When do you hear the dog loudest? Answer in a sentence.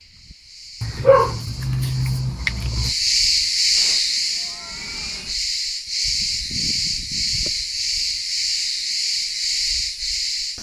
The loudest moment of the dog is at 1 second.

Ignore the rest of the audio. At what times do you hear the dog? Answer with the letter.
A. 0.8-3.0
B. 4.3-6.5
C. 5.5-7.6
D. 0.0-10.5
A.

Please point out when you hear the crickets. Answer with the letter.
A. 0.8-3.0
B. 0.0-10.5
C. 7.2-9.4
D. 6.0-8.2
B.